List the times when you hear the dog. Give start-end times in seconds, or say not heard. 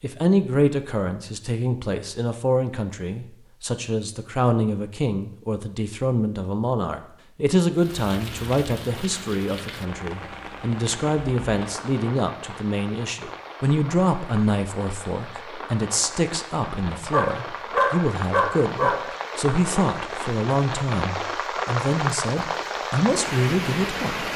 17.1-19.1.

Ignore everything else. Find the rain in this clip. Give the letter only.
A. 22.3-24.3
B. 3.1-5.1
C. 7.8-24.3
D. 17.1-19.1
C.